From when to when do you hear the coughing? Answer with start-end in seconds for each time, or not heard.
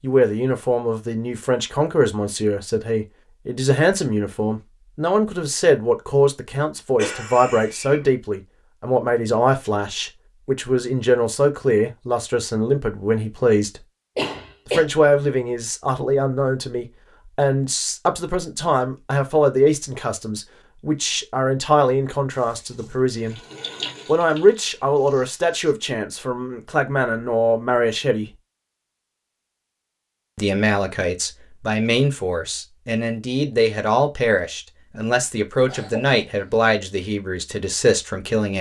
7.0-8.1, 14.2-14.8, 35.6-36.2.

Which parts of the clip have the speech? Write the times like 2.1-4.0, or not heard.
0.0-13.8, 14.7-23.4, 24.1-28.3, 30.4-38.5.